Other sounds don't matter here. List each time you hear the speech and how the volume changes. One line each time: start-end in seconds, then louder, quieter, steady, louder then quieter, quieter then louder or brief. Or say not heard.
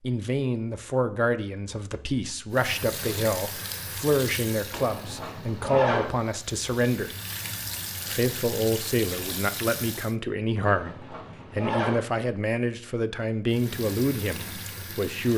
0.0-7.1 steady
8.1-15.3 steady.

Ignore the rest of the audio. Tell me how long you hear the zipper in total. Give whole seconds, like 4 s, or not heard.
3 s.